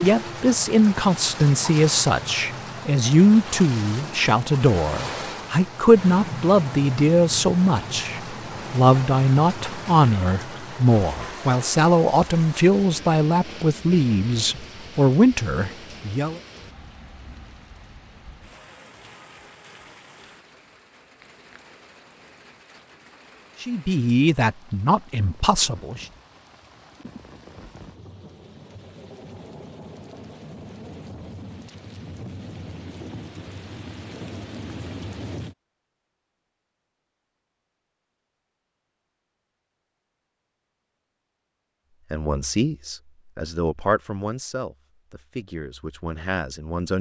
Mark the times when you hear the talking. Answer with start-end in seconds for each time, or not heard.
0.0-16.4, 23.6-26.1, 42.1-46.9.